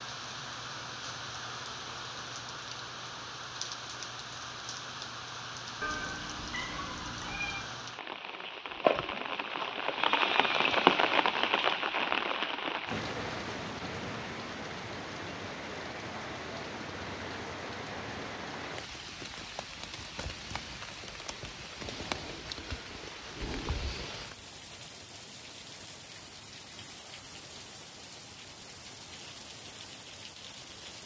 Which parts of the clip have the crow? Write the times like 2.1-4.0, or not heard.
not heard.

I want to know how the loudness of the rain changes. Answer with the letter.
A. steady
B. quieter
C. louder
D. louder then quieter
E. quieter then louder
D.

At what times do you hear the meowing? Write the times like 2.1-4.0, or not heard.
5.8-7.7, 23.4-23.9.